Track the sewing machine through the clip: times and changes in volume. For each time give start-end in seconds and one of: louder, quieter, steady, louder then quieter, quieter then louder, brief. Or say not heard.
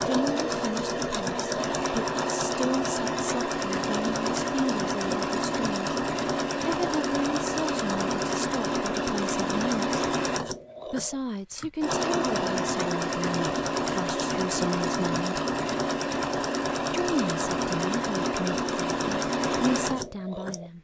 0.0-20.7 steady.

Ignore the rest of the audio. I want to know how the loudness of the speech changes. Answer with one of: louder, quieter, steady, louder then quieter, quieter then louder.
steady.